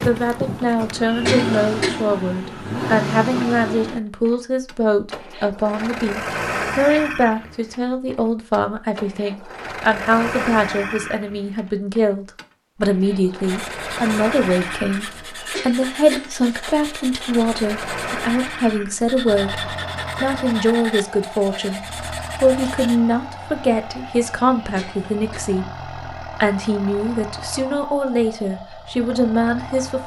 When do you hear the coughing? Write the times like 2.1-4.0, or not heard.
1.1-2.0, 15.3-16.6, 24.6-25.4.